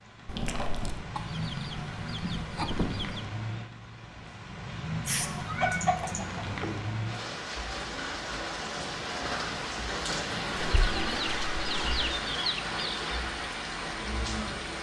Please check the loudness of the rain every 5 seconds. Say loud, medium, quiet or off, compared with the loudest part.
medium, loud, loud.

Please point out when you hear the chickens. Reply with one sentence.
The chickens can be heard from 1.1 to 3.3 s, from 5.2 to 6.5 s and from 10.9 to 13.1 s.